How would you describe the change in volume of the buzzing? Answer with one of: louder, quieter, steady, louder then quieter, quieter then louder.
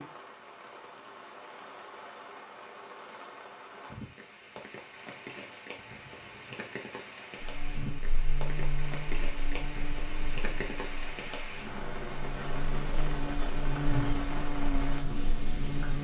quieter then louder.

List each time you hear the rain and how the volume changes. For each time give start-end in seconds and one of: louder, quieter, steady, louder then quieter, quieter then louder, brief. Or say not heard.
0.0-15.9 louder.